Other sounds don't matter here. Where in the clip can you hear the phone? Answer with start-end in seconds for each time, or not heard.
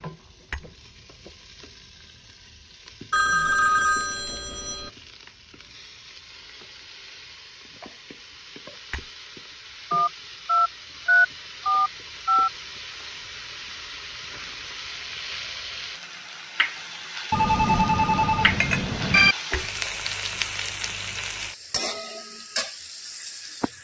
3.1-4.9, 9.9-12.5, 17.3-19.4.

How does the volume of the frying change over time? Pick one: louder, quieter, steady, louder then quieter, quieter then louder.
louder.